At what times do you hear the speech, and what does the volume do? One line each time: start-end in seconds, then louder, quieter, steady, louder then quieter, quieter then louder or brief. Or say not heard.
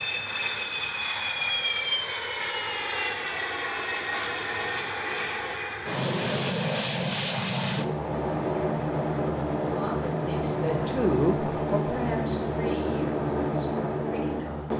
9.7-14.7 louder then quieter.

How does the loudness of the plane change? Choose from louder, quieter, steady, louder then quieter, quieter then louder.
steady.